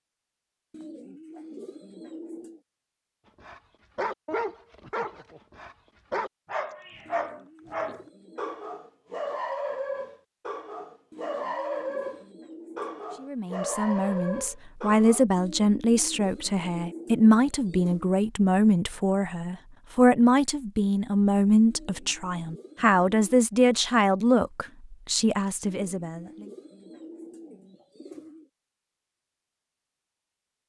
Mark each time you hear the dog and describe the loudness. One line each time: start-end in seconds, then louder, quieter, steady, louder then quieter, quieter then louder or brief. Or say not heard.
3.4-15.2 steady.